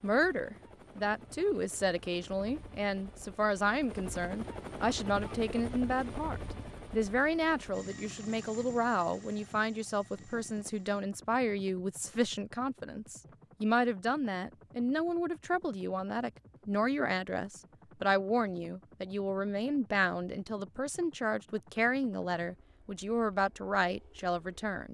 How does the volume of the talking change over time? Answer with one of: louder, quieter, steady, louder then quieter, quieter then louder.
steady.